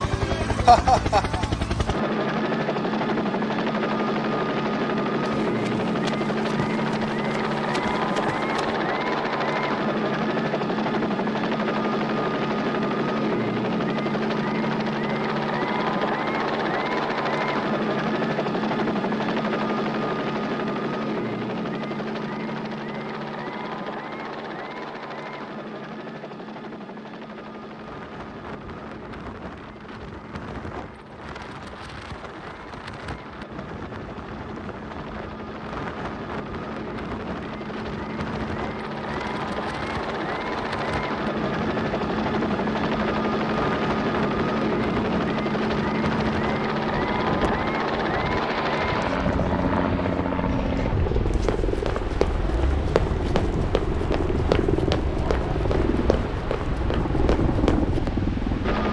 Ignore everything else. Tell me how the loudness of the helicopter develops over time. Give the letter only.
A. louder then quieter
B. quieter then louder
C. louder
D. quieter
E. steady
B.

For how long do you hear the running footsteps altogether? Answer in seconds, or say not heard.
10 s.